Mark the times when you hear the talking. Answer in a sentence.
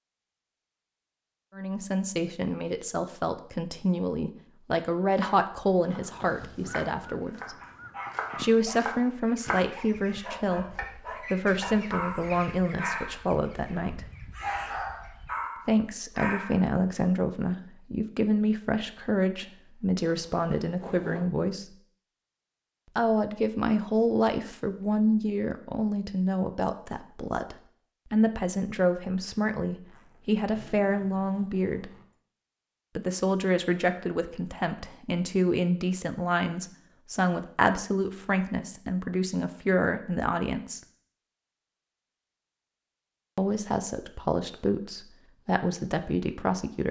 You can hear the talking from 1.6 to 7.5 s, from 8.3 to 14.1 s, from 15.7 to 21.8 s, from 22.9 to 32.0 s, from 33.0 to 40.8 s and from 43.4 to 46.8 s.